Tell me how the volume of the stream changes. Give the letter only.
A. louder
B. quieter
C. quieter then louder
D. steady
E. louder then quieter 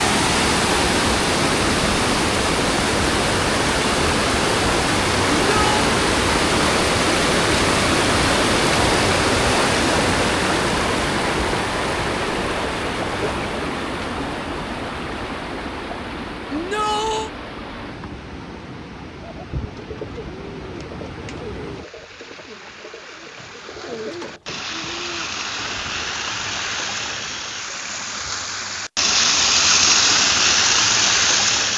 C.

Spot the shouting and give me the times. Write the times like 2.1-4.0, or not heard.
5.5-5.9, 16.5-17.3.